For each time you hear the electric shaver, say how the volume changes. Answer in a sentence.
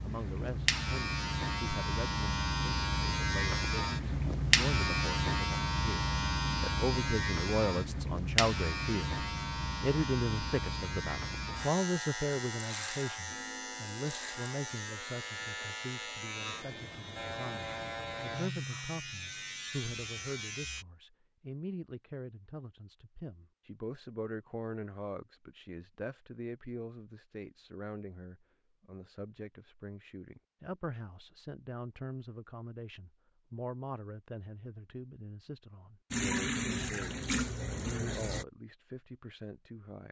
The electric shaver can be heard from 0.0 to 20.9 s, getting quieter.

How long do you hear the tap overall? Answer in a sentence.
The tap can be heard for 2 seconds in total.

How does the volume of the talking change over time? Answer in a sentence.
The volume of the talking goes down.